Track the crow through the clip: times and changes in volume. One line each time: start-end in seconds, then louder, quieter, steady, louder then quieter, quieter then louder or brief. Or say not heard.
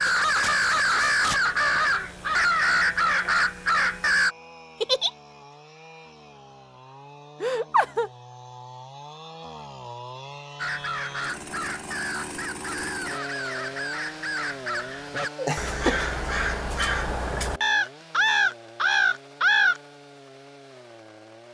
0.0-4.3 steady
10.6-19.8 louder.